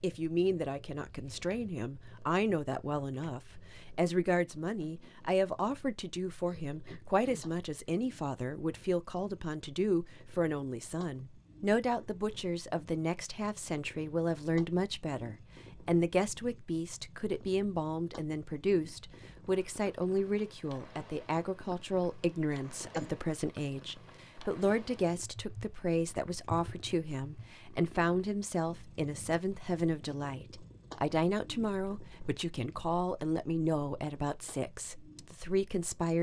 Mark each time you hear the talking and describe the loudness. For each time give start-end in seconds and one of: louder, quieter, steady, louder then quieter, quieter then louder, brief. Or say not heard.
0.0-36.1 steady.